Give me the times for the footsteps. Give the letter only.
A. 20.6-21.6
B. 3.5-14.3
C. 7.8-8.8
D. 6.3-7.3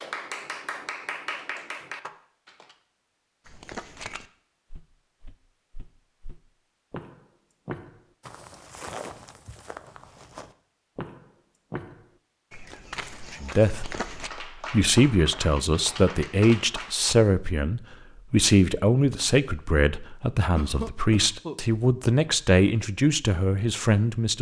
B.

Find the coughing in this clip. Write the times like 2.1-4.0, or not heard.
20.6-21.6.